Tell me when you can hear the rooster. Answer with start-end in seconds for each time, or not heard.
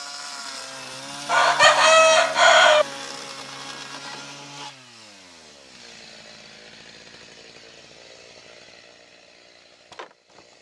1.2-2.9.